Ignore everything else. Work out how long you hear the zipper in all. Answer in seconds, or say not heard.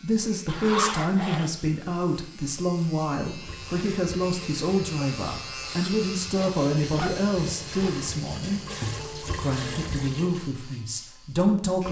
3 s.